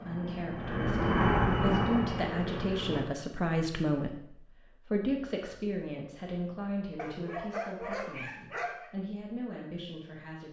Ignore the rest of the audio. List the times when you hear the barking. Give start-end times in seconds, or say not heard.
7.0-8.9.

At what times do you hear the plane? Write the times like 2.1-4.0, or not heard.
0.0-3.0.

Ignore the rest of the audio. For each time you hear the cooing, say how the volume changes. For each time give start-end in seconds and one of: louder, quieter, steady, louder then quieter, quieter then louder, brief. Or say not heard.
not heard.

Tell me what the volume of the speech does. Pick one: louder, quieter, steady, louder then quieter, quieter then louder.
quieter.